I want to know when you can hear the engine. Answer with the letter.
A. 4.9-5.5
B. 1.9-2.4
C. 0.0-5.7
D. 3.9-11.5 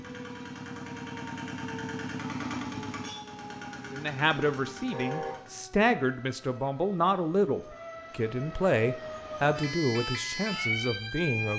C.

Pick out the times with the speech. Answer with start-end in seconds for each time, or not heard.
3.9-11.5.